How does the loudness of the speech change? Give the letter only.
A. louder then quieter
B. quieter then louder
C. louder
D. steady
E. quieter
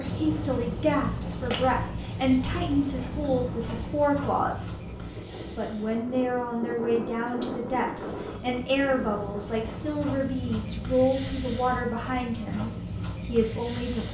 D.